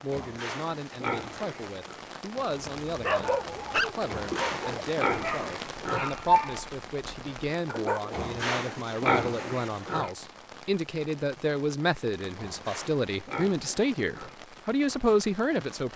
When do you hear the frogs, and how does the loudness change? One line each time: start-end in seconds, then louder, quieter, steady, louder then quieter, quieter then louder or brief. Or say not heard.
not heard.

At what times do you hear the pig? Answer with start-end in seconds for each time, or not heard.
0.1-2.0, 4.0-6.1, 8.1-10.1, 12.3-14.3.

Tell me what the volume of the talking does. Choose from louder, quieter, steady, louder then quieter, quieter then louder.
louder.